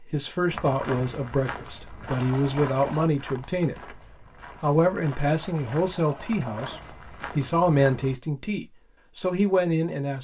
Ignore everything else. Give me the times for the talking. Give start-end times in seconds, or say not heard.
0.0-4.0, 4.6-10.1.